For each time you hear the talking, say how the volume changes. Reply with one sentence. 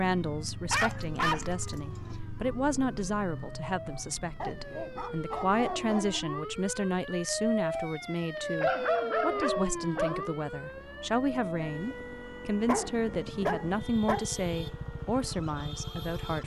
The talking can be heard from 0.0 to 16.4 s, at a steady volume.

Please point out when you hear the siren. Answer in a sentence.
The siren can be heard from 0.1 to 16.4 s.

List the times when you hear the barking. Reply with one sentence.
The barking can be heard from 0.7 to 2.2 s, from 4.4 to 6.2 s, from 8.6 to 10.2 s and from 12.7 to 14.2 s.